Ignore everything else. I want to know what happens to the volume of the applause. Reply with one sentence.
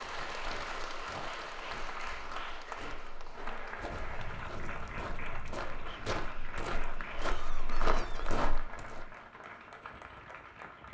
The volume of the applause goes down.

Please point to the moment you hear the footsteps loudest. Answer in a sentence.
The volume of the footsteps peaks at 8 seconds.